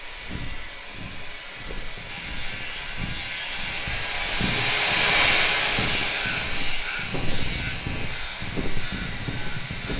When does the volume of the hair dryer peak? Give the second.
5 s.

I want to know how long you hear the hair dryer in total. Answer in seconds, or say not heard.
10 s.